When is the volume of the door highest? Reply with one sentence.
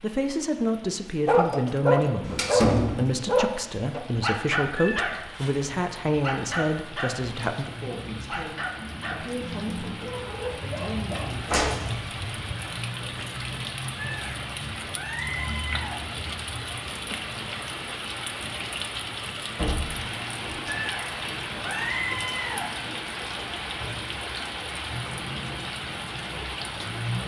The loudest moment of the door is at 3 seconds.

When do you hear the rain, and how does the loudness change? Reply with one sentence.
The rain can be heard from 0.0 to 27.2 s, getting louder.